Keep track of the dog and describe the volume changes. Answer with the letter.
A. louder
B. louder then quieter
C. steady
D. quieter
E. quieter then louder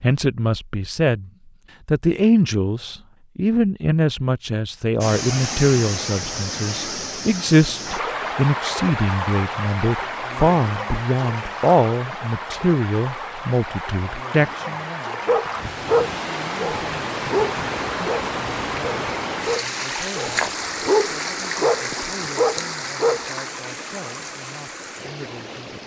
E.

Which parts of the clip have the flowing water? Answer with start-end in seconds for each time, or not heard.
5.0-25.8.